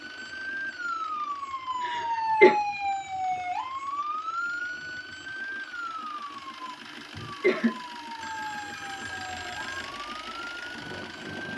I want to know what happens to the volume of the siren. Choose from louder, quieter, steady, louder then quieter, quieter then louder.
quieter.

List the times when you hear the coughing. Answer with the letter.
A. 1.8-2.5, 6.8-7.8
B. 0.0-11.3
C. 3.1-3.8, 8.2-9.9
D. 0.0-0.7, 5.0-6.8
A.